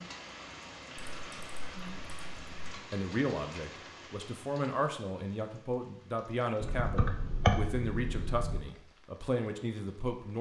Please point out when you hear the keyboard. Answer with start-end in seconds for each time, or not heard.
0.9-2.8, 6.6-8.6.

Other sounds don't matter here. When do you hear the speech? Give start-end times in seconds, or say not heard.
2.9-10.3.